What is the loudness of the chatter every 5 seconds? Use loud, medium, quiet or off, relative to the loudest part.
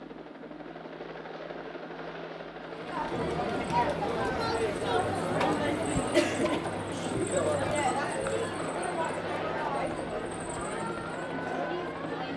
loud, loud, medium.